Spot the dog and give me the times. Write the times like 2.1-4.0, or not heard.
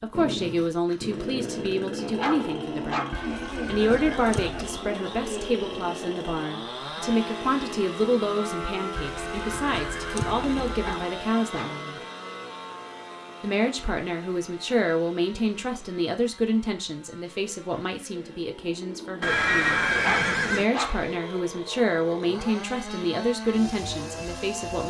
2.2-3.2, 10.8-11.8, 20.0-21.1.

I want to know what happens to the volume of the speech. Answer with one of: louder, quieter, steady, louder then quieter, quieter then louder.
steady.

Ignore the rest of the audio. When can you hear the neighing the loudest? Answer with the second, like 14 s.
20 s.